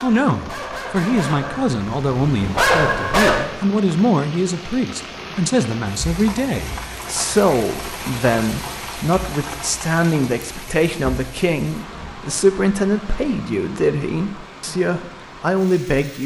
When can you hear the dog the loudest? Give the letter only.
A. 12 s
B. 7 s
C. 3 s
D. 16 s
C.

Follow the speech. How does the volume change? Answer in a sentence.
The volume of the speech stays about the same.